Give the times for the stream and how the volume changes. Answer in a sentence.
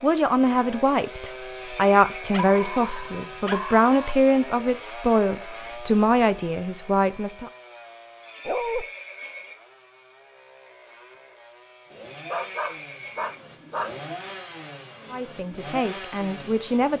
You can't hear the stream here.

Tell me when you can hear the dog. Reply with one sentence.
You can hear the dog from 2.3 to 4.2 s, from 8.4 to 8.8 s and from 12.2 to 13.9 s.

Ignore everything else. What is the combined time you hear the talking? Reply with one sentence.
The talking can be heard for 9 seconds in total.